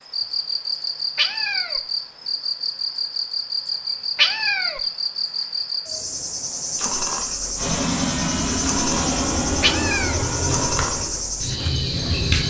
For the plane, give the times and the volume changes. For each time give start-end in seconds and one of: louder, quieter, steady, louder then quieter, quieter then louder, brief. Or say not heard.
7.5-12.4 quieter.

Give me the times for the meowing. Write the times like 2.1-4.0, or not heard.
1.1-1.8, 4.2-4.8, 9.6-10.2.